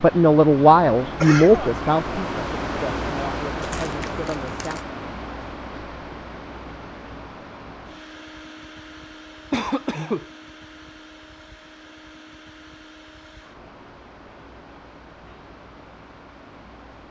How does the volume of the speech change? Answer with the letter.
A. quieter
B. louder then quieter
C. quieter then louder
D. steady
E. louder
A.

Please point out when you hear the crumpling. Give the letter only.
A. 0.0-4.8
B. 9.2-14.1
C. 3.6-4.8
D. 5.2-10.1
C.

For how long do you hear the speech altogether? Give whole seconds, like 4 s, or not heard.
5 s.